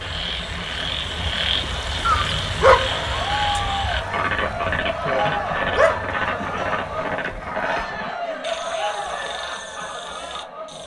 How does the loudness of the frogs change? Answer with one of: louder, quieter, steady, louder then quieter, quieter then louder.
quieter.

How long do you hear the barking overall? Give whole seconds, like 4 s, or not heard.
3 s.